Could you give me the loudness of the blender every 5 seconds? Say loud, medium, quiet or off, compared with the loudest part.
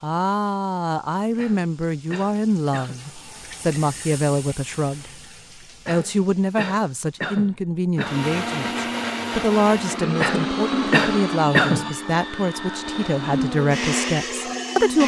off, loud, loud.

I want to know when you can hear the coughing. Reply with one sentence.
You can hear the coughing from 1.4 to 3.0 s, from 5.8 to 8.2 s and from 10.2 to 11.9 s.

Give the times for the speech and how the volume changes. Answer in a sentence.
You can hear the speech from 0.0 to 5.1 s, at a steady volume; and from 5.8 to 15.0 s, at a steady volume.